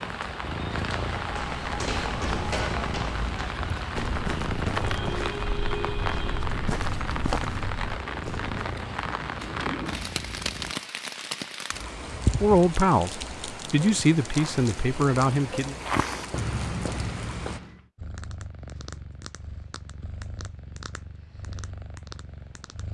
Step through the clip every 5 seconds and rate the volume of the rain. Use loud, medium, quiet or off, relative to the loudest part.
loud, loud, loud, medium, off.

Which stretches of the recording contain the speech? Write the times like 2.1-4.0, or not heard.
12.4-15.8.